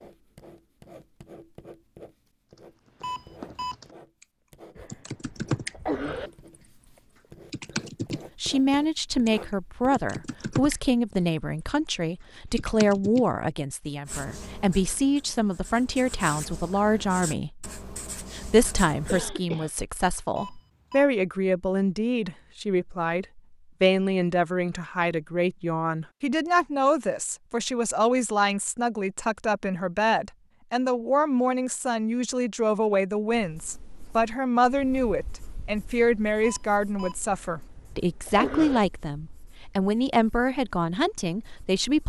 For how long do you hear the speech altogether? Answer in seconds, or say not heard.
34 s.